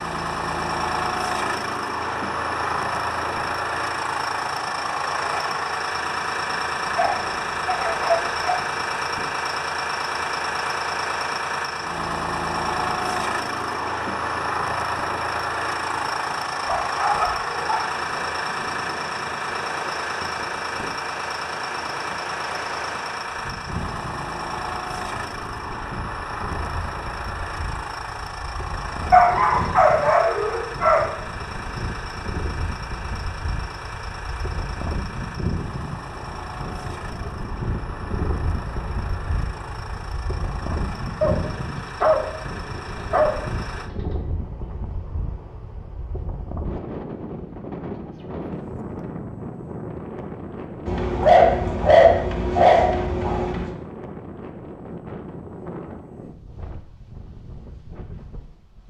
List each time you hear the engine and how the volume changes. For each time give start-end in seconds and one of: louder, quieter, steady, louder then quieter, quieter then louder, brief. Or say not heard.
0.0-43.9 quieter.